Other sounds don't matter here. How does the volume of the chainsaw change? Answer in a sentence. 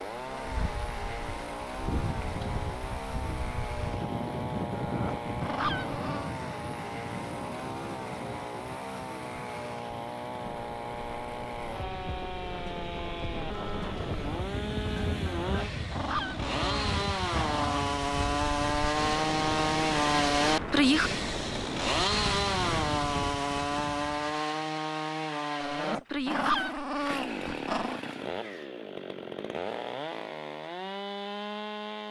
The volume of the chainsaw goes up, then down.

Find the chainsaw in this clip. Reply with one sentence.
The chainsaw can be heard from 0.0 to 32.0 s.